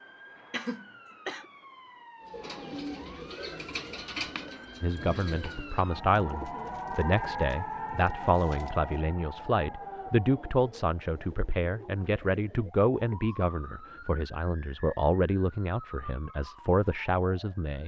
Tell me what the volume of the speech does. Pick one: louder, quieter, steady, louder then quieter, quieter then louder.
steady.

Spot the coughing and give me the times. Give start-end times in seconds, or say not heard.
0.5-1.4.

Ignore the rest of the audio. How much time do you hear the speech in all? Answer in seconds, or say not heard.
13 s.